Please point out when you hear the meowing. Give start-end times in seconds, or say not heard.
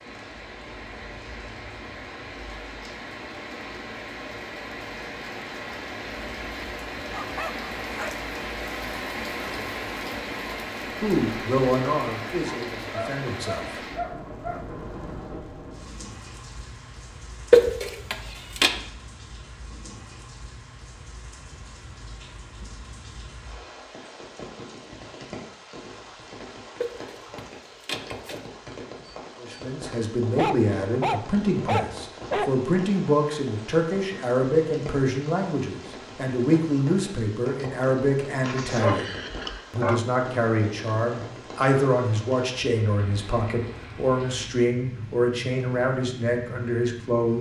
17.5-18.7, 26.8-28.4.